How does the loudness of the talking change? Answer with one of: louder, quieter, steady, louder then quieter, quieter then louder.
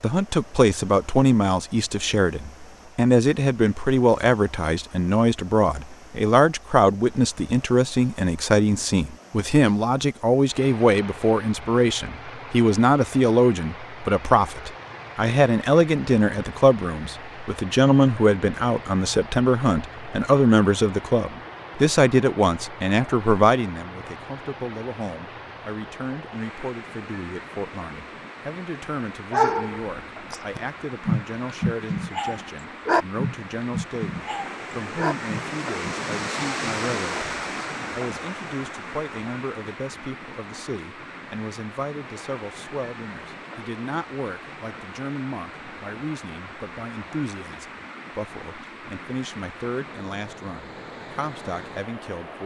quieter.